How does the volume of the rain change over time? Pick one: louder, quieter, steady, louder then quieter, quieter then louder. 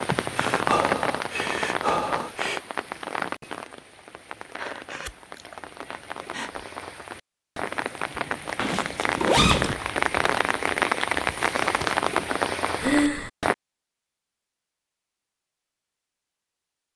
quieter then louder.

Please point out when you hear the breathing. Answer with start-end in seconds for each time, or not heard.
0.3-2.6, 4.5-6.7, 9.3-9.8, 12.8-13.3.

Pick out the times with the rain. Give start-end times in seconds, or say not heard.
0.0-13.6.